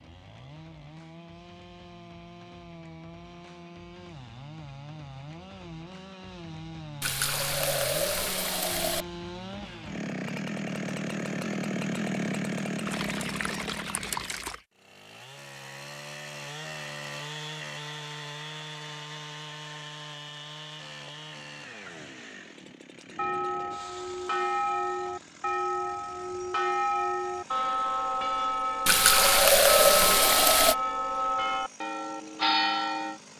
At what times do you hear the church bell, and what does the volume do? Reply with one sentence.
You can hear the church bell from 23.1 to 33.2 s, at a steady volume.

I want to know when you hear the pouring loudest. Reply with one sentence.
The volume of the pouring peaks at 30 seconds.